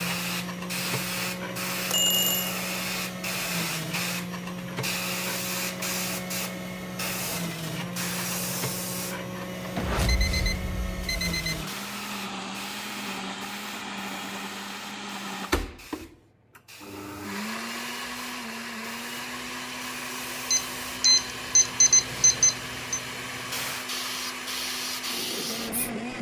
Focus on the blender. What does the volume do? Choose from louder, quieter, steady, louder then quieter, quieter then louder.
steady.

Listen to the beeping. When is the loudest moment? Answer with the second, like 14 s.
22 s.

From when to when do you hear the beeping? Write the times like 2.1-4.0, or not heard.
1.9-2.5, 9.8-11.7, 20.5-23.0.